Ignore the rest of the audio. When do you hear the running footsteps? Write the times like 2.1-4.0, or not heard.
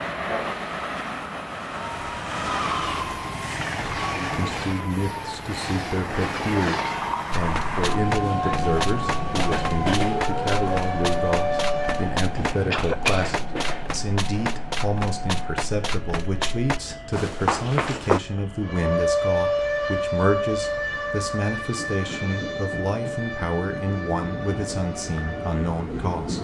7.3-18.2.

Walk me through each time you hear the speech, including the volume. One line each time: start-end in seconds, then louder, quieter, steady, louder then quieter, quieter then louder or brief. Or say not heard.
4.1-26.3 steady.